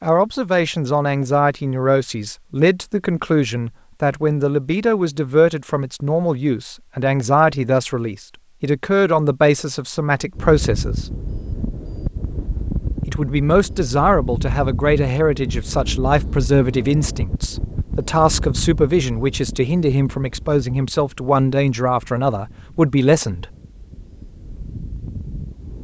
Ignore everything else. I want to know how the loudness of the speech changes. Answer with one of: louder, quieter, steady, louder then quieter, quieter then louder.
steady.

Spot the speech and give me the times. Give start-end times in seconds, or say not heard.
0.0-11.1, 13.1-23.4.